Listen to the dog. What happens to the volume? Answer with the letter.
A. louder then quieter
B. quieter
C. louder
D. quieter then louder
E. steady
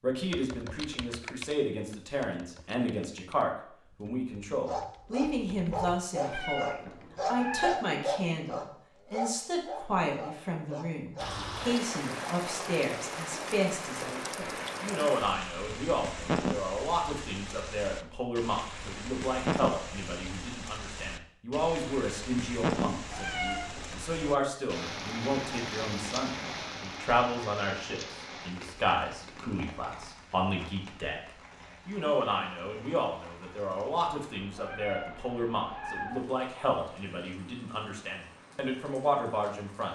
B.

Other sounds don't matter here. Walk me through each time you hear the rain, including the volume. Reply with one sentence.
You can hear the rain from 11.2 to 39.9 s, getting quieter.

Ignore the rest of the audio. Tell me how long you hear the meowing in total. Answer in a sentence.
The meowing can be heard for 4 seconds in total.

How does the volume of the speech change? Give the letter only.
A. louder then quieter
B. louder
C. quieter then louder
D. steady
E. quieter
D.